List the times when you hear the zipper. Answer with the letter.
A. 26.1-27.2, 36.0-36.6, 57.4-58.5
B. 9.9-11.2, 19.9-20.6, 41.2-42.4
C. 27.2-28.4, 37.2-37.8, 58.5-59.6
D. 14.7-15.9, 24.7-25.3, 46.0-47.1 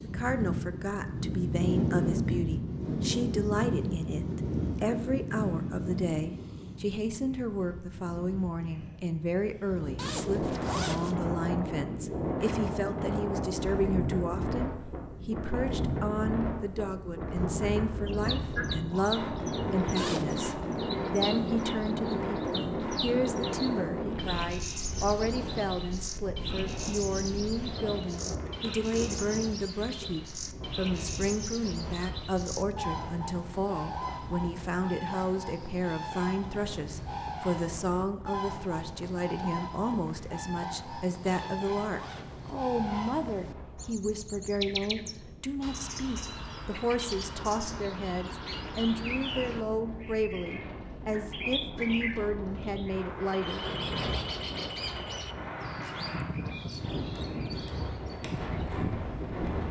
B.